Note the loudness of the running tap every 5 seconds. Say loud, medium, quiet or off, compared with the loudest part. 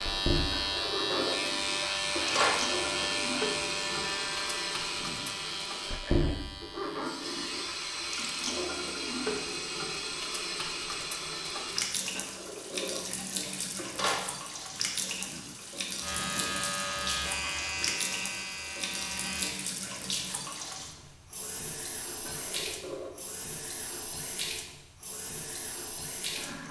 loud, loud, loud, loud, medium, medium.